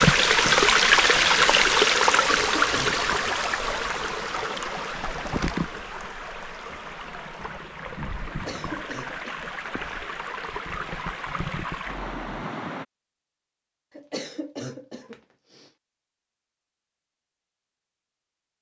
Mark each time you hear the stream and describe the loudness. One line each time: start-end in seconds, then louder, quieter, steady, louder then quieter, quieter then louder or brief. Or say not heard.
0.0-12.8 quieter.